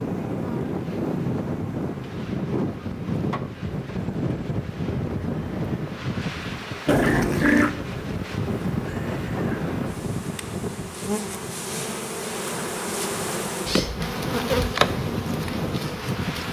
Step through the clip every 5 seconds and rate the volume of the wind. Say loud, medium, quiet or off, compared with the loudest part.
loud, loud, medium, loud.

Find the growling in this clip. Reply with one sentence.
The growling can be heard from 6.8 to 7.8 s.